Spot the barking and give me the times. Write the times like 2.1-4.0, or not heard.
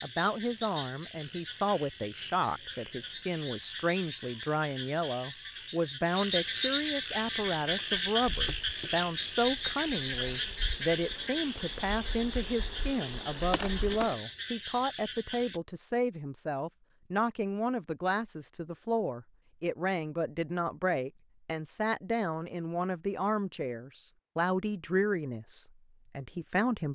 not heard.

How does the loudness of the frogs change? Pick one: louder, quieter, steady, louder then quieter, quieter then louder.
louder then quieter.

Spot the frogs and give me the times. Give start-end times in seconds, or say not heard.
0.0-15.6.